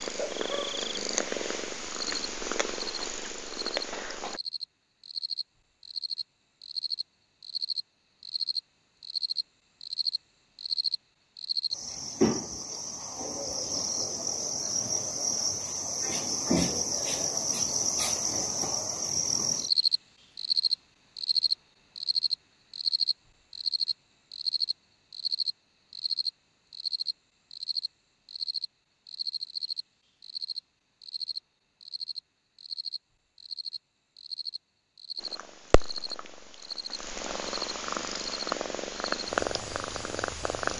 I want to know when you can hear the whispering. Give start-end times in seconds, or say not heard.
not heard.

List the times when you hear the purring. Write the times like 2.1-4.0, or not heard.
0.0-4.4, 35.2-40.7.